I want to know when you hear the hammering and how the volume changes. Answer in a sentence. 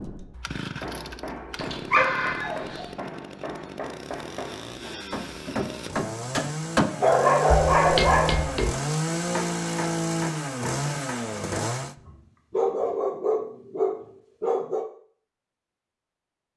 The hammering can be heard from 0.8 to 11.8 s, getting louder then quieter.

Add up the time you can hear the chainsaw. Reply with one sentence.
You can hear the chainsaw for 12 seconds altogether.